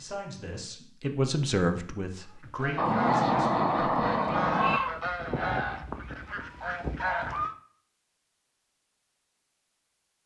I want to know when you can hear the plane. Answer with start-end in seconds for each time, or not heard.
2.8-4.8.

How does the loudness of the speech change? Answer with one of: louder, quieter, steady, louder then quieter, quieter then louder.
louder then quieter.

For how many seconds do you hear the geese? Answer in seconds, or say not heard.
5 s.